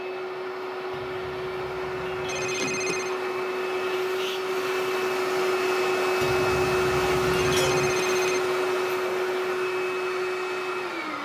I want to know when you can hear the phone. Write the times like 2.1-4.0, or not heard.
2.2-3.1, 7.5-8.5.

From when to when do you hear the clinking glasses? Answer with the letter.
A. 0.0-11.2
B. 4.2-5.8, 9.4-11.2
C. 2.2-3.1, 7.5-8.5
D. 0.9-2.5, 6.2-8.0
D.